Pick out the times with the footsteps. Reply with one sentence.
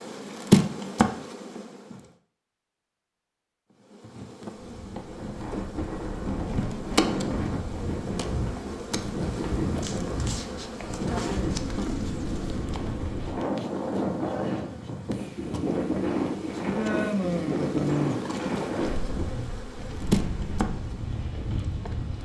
You can't hear the footsteps here.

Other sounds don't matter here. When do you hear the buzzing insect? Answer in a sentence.
You can hear the buzzing insect from 0.0 to 2.0 s and from 3.9 to 22.1 s.